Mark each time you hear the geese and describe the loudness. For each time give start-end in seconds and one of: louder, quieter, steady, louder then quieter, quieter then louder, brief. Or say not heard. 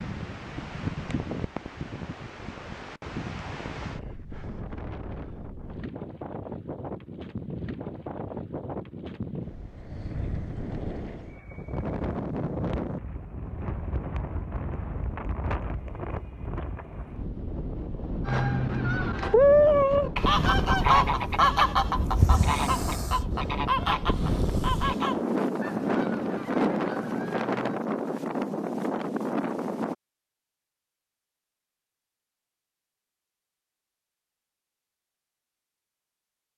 18.2-27.8 quieter.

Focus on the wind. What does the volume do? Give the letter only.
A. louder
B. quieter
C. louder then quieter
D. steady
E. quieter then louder
A.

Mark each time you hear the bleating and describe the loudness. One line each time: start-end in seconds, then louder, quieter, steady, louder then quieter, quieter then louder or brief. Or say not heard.
not heard.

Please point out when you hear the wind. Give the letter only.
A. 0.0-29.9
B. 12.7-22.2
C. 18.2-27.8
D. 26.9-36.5
A.